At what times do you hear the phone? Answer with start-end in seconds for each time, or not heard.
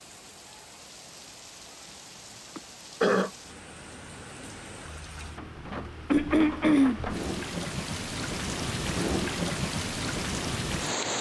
not heard.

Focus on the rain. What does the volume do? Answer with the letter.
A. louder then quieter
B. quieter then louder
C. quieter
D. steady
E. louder
E.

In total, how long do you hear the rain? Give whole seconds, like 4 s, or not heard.
11 s.